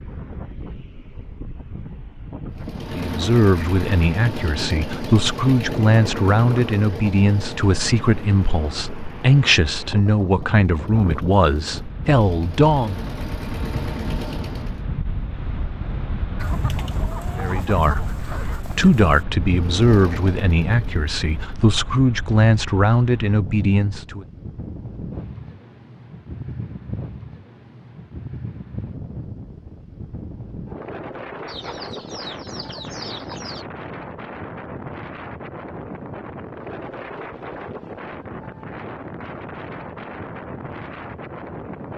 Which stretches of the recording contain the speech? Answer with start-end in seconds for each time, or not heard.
3.0-13.1, 17.4-24.2.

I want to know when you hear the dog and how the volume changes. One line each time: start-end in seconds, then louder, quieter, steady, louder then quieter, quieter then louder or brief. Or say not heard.
not heard.